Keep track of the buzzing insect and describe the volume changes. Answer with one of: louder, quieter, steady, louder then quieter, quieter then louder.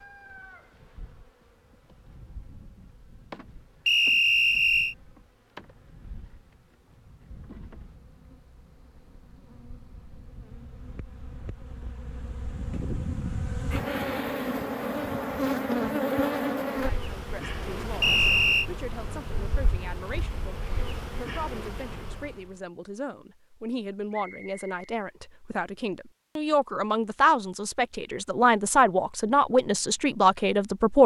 louder then quieter.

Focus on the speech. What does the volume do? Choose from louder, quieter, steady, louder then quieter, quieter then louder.
louder.